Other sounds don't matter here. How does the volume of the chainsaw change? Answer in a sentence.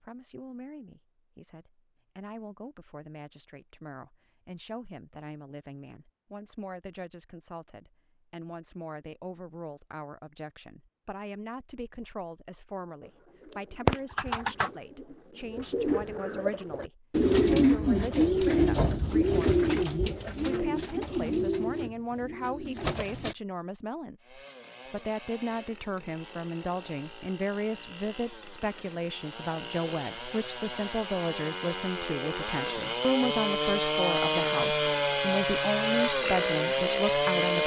The loudness of the chainsaw goes up.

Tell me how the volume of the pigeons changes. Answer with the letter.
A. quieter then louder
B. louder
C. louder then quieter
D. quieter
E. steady
C.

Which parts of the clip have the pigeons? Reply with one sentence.
You can hear the pigeons from 13.0 to 23.4 s.